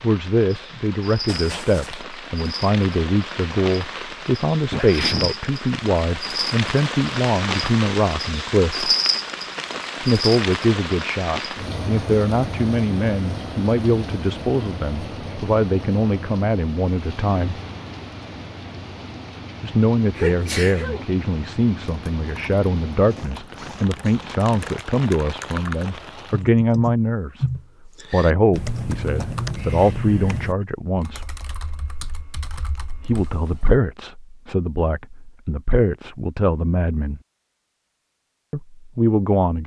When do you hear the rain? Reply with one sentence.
The rain can be heard from 0.0 to 26.4 s.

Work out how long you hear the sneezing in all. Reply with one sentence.
You can hear the sneezing for 3 seconds altogether.